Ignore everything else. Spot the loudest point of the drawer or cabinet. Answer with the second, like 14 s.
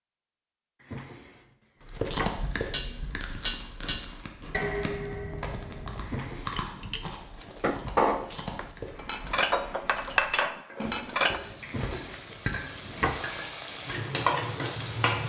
13 s.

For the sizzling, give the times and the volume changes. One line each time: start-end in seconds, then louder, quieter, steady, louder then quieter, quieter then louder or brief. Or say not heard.
8.8-15.2 louder.